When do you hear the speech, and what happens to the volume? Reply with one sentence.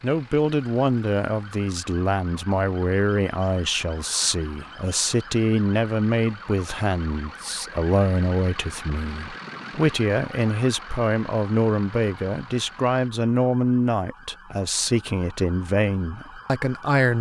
You can hear the speech from 0.0 to 17.1 s, at a steady volume.